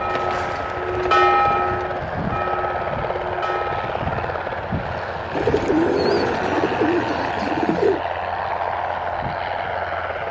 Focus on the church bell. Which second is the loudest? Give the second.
1 s.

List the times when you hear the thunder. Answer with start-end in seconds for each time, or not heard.
not heard.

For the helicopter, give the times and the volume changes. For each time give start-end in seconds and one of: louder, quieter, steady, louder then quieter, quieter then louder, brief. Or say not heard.
0.0-10.2 steady.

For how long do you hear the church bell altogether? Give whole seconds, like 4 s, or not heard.
4 s.